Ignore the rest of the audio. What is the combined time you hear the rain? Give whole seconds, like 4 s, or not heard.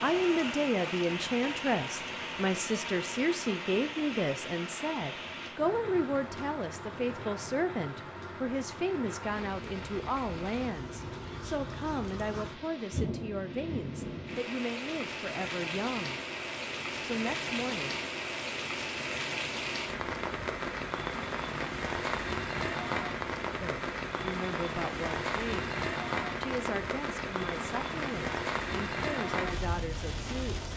31 s.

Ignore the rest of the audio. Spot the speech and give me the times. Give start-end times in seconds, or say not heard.
0.0-16.2, 17.0-18.0, 23.6-25.8, 26.4-30.7.